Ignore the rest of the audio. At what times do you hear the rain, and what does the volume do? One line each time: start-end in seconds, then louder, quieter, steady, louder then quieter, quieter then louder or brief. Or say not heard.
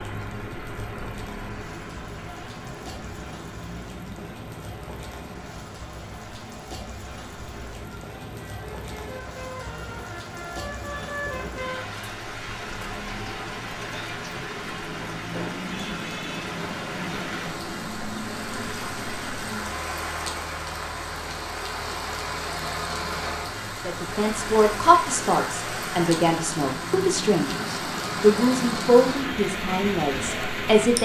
0.0-30.9 louder.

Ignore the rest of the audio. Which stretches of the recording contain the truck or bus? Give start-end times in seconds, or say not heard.
0.0-30.9.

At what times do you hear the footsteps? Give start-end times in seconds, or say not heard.
not heard.